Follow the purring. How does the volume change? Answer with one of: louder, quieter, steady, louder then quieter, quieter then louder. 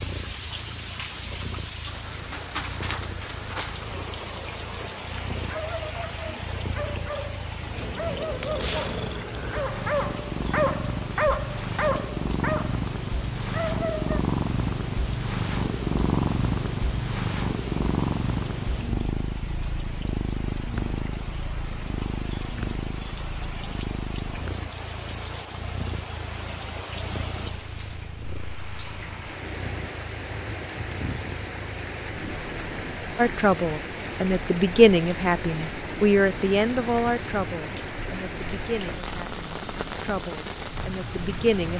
louder then quieter.